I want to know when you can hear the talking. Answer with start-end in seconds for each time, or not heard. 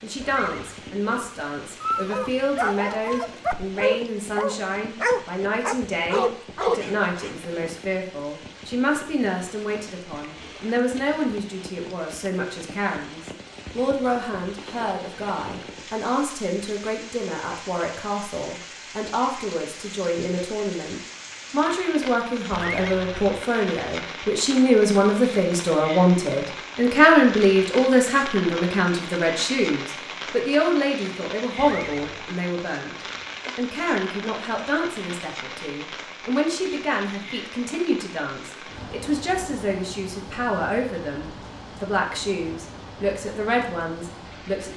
0.0-32.9, 33.5-44.7.